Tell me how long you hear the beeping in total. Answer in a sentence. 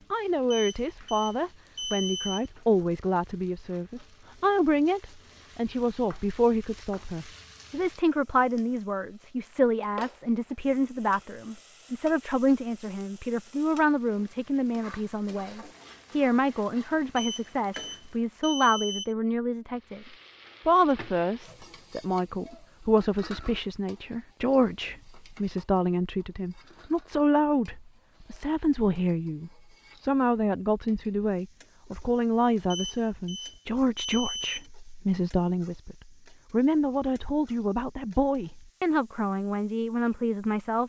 You can hear the beeping for 6 seconds altogether.